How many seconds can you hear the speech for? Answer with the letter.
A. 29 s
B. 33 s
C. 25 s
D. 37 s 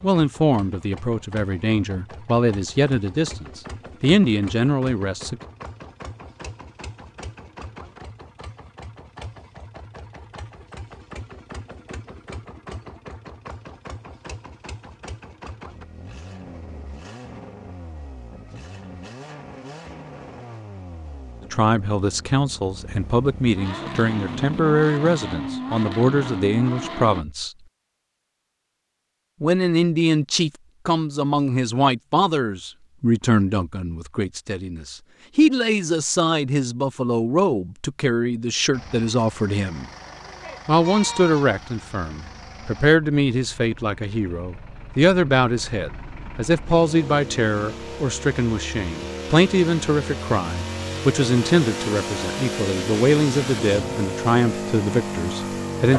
D.